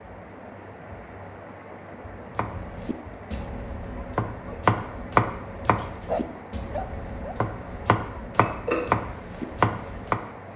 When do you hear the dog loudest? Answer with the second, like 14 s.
6 s.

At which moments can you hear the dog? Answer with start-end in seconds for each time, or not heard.
5.7-7.4.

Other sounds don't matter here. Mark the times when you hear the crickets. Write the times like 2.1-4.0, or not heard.
2.9-10.5.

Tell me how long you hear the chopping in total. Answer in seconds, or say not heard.
8 s.